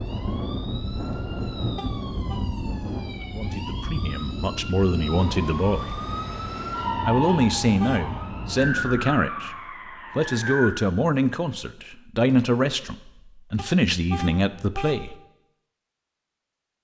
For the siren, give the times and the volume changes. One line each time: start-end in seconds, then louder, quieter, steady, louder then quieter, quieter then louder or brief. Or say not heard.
0.0-10.8 louder.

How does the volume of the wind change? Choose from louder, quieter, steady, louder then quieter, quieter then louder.
quieter.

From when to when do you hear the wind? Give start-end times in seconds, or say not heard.
0.0-9.0.